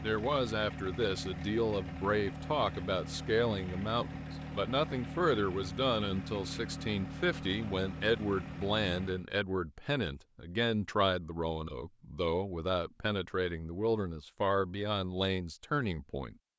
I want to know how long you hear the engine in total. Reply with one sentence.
You can hear the engine for 9 seconds altogether.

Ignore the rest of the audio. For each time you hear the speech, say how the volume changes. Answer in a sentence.
The speech can be heard from 0.0 to 16.4 s, at a steady volume.